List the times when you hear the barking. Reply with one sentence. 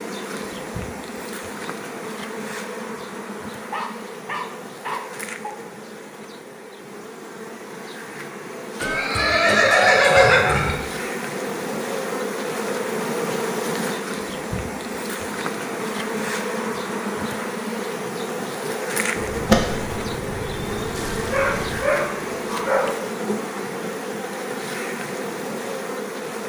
You can hear the barking from 3.7 to 5.5 s and from 20.9 to 22.9 s.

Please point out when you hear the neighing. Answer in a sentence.
You can hear the neighing from 8.8 to 10.8 s and from 19.1 to 21.9 s.